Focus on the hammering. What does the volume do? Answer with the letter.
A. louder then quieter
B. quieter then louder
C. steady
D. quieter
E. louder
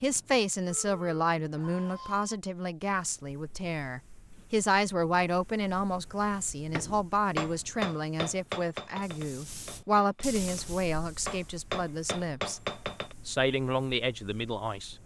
B.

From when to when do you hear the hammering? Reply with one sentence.
The hammering can be heard from 6.7 to 13.2 s.